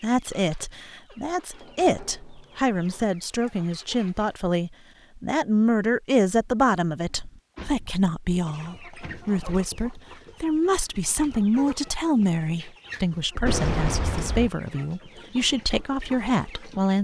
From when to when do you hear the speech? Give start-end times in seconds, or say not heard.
0.0-17.0.